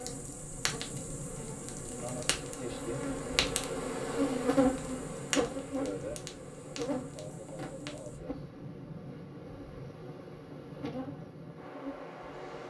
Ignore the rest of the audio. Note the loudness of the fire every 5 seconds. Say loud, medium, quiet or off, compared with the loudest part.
loud, loud, off.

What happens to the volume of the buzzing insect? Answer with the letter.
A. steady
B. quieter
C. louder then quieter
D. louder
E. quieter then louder
C.